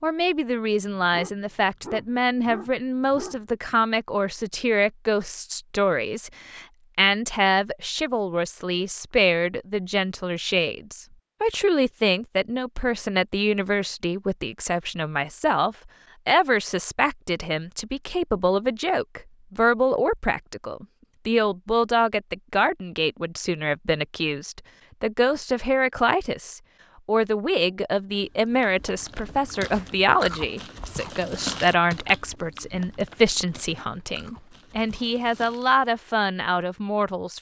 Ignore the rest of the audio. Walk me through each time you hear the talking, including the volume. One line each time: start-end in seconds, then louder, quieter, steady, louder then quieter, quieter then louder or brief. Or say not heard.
0.0-37.3 steady.